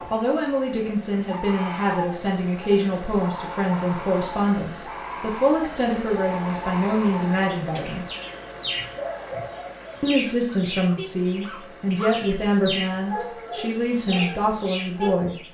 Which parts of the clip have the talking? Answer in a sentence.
You can hear the talking from 0.1 to 8.1 s and from 10.0 to 15.3 s.